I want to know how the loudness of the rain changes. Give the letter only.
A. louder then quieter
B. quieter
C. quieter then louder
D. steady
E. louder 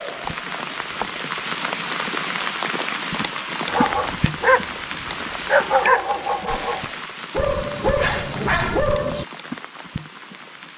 B.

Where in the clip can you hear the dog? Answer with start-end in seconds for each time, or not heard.
3.6-9.2.